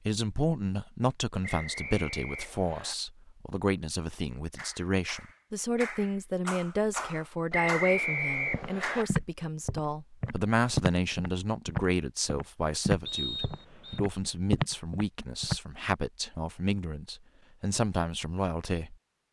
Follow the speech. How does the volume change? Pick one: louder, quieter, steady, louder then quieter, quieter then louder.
steady.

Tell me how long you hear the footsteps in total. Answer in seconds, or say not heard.
7 s.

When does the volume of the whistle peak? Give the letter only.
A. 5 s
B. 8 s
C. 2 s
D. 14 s
B.